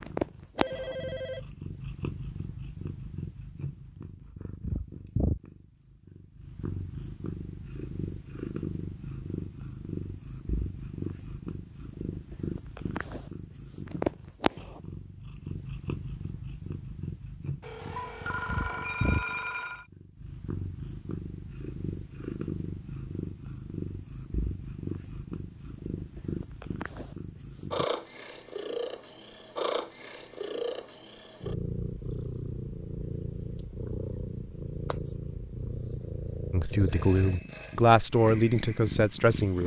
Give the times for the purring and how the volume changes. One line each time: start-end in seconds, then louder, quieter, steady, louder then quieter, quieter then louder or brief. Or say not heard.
0.0-39.6 steady.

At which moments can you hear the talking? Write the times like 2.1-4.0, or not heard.
36.5-39.6.